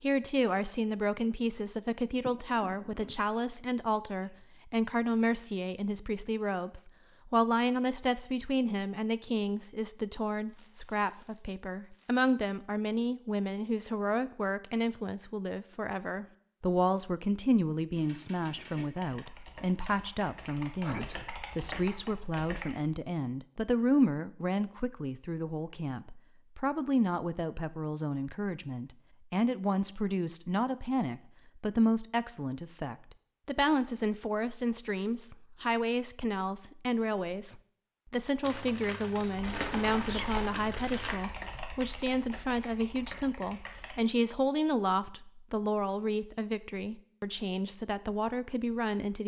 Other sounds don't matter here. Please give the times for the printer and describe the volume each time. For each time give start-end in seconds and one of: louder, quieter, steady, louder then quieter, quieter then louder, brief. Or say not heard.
not heard.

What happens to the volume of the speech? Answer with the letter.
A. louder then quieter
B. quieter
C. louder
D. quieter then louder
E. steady
E.